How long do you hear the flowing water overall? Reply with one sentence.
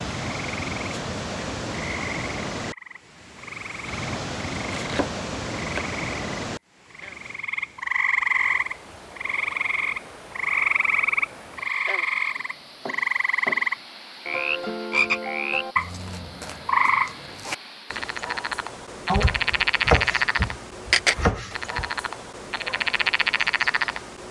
You can hear the flowing water for 18 seconds altogether.